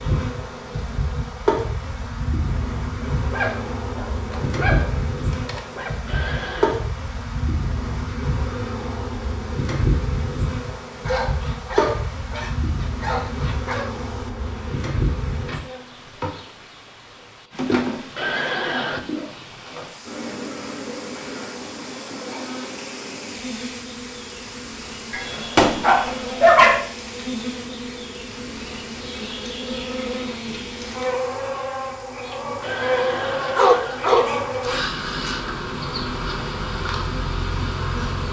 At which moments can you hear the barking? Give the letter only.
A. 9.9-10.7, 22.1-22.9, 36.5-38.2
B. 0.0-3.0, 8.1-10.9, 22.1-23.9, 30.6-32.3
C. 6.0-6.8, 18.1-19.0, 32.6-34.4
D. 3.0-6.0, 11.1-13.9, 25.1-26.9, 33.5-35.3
D.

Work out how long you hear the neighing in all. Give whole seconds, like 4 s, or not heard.
3 s.